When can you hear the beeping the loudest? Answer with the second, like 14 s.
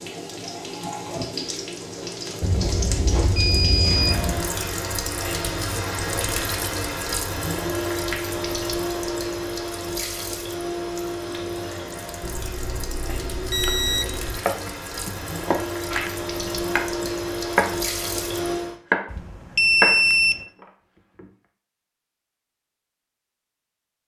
20 s.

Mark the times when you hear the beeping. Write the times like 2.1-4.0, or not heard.
2.4-4.4, 12.2-14.4, 19.1-20.4.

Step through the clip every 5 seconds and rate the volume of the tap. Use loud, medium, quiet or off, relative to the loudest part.
loud, loud, medium, loud, off.